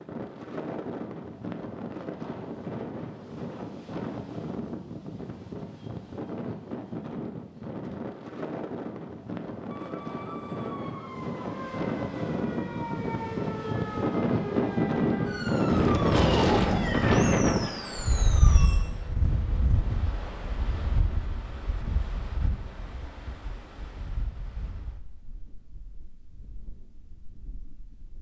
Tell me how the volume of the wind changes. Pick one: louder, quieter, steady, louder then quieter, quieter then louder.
louder then quieter.